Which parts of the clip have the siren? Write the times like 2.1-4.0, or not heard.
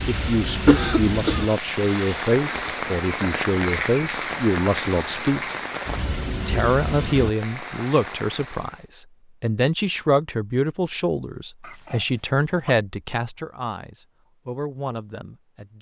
not heard.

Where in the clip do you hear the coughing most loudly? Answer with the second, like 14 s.
1 s.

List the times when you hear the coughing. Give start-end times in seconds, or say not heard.
0.7-1.6, 11.6-12.8.